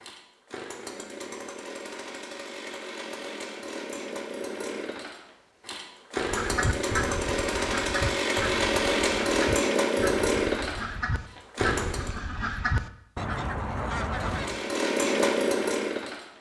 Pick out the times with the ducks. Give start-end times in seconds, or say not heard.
6.2-14.6.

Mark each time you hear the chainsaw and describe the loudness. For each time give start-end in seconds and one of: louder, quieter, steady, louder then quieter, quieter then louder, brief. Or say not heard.
0.0-12.2 louder
14.1-16.3 brief.